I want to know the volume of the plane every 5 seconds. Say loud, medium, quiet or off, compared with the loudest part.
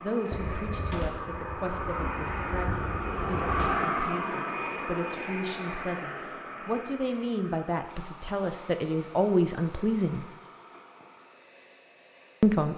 loud, medium, quiet.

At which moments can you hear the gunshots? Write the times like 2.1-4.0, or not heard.
0.3-3.8.